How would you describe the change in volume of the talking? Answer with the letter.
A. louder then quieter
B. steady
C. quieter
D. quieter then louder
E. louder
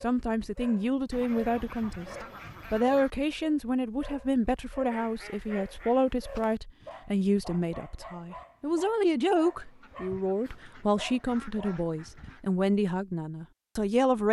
B.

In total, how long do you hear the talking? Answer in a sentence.
The talking can be heard for 14 seconds in total.